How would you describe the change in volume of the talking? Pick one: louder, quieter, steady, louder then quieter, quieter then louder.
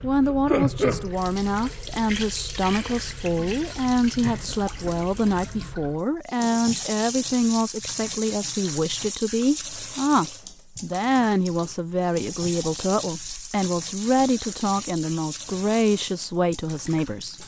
steady.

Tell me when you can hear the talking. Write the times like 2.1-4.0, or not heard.
0.0-17.4.